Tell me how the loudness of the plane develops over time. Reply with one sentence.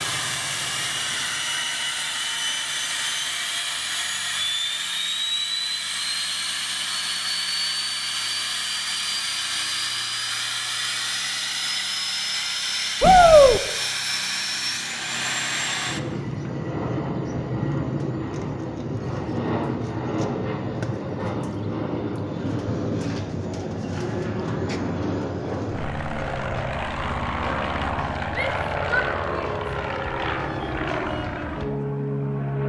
The volume of the plane stays about the same.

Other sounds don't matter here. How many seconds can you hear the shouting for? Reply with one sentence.
The shouting can be heard for 2 seconds in total.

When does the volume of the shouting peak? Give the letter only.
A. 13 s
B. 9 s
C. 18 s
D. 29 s
A.